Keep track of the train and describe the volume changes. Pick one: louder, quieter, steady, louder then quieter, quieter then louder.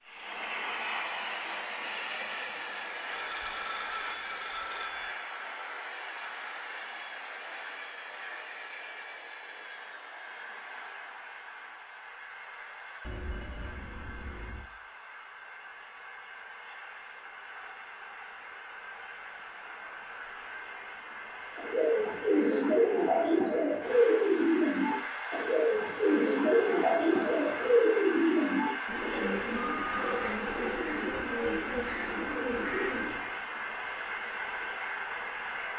quieter then louder.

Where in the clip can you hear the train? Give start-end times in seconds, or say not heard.
0.0-35.7.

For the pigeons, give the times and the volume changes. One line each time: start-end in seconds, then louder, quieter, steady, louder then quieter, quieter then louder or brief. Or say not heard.
21.6-33.2 quieter.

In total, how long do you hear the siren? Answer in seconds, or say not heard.
not heard.